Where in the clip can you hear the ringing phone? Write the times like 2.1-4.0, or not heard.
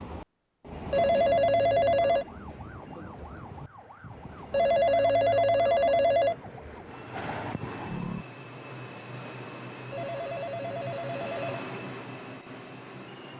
0.9-2.2, 4.5-6.3, 9.9-11.7.